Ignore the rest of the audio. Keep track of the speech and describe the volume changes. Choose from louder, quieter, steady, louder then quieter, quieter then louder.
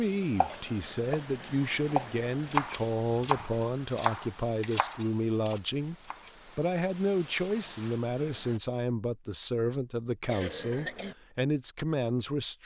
steady.